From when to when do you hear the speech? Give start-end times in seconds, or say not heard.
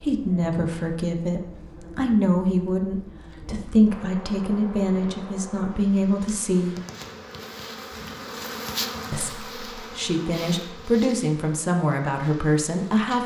0.0-6.8, 9.1-13.2.